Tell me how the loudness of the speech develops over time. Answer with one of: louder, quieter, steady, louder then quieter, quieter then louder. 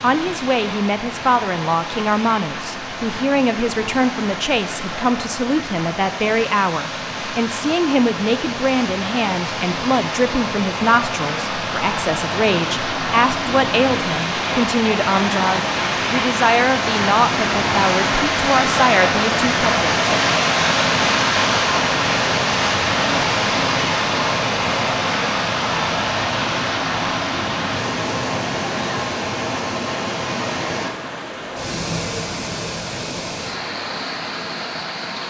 steady.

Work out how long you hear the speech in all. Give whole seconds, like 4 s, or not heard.
20 s.